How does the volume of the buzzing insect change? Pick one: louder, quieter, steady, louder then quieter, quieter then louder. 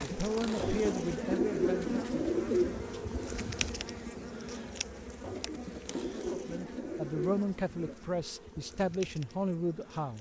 quieter.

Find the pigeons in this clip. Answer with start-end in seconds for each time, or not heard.
0.6-3.3, 5.2-8.0.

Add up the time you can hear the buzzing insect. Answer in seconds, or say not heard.
10 s.